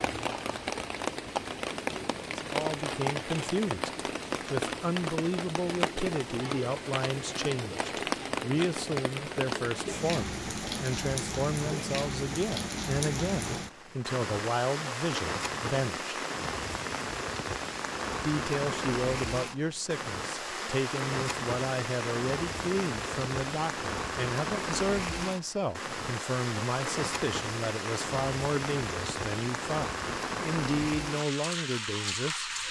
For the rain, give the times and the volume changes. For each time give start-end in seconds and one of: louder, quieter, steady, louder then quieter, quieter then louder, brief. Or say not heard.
0.0-32.6 steady.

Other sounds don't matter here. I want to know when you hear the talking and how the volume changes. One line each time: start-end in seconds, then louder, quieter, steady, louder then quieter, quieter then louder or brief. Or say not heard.
2.2-16.1 steady
18.2-32.5 steady.